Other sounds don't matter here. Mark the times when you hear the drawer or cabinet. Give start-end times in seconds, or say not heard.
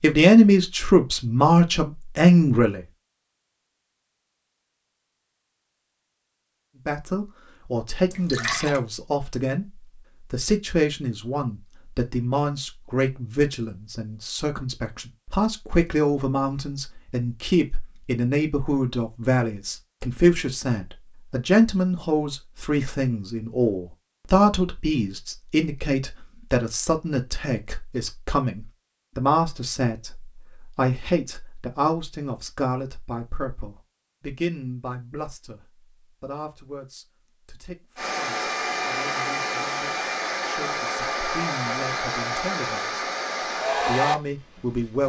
not heard.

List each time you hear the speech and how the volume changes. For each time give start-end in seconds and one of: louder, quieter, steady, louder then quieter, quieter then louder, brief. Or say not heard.
0.0-2.9 brief
6.8-9.7 brief
10.3-43.0 quieter
43.8-45.0 brief.